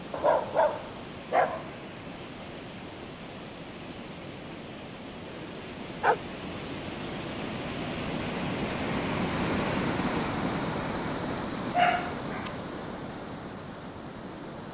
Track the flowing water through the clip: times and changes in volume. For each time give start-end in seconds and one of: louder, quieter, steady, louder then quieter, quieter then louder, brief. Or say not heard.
0.0-14.6 louder then quieter.